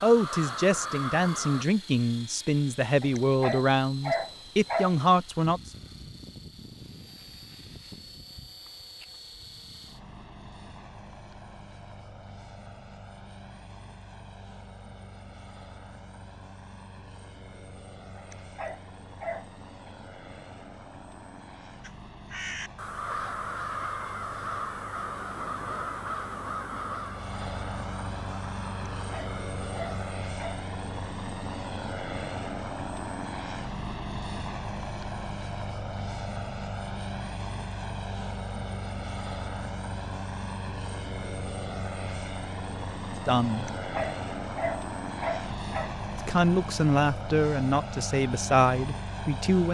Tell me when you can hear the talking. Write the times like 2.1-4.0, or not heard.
0.0-5.6, 43.2-43.7, 46.1-49.6.